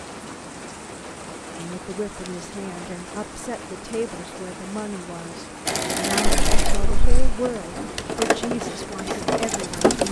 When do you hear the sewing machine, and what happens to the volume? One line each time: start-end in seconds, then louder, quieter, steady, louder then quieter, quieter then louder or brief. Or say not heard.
5.7-10.0 quieter then louder.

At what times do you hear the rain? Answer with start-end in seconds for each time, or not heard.
0.0-10.0.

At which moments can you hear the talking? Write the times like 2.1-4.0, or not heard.
1.6-10.0.